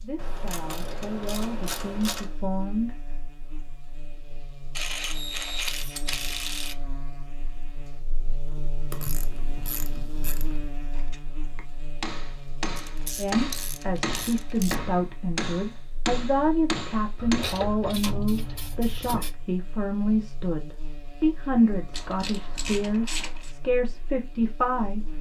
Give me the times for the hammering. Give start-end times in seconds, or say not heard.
10.9-17.7.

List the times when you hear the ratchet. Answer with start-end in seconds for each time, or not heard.
0.1-2.4, 4.8-6.8, 8.9-10.6, 12.8-14.8, 17.1-19.4, 21.9-23.6.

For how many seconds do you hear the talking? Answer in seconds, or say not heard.
15 s.